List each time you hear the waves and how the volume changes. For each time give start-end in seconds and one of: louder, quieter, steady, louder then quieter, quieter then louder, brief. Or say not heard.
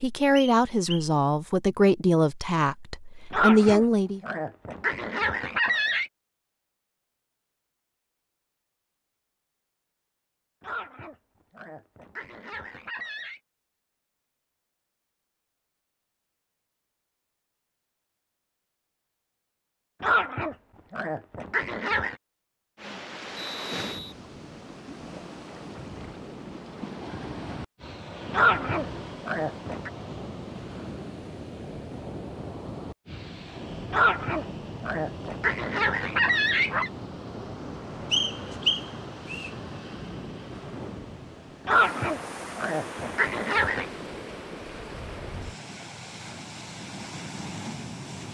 22.8-48.2 steady.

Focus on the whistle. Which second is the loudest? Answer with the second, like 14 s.
39 s.